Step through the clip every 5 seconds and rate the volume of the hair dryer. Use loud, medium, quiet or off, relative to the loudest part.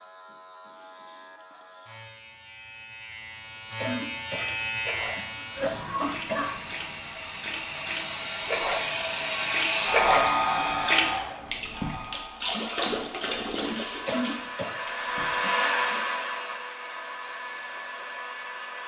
off, loud, loud, loud.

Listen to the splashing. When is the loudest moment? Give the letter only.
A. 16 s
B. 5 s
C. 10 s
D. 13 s
C.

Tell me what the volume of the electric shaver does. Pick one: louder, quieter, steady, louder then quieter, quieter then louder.
louder then quieter.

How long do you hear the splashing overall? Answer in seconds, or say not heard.
11 s.